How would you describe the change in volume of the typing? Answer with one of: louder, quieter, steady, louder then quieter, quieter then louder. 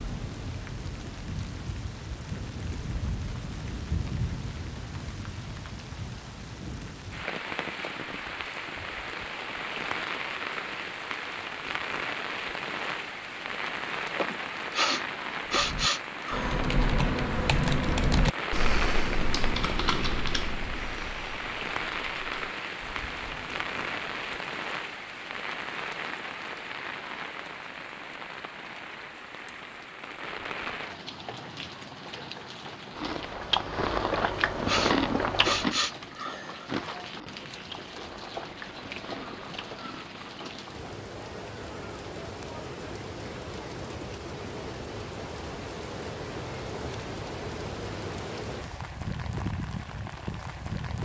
quieter.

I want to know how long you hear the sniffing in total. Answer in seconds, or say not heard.
5 s.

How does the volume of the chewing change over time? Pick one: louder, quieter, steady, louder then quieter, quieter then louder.
quieter.